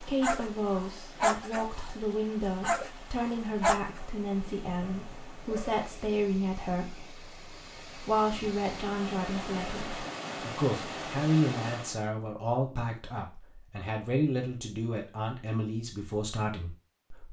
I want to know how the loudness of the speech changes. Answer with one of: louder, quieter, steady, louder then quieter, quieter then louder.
steady.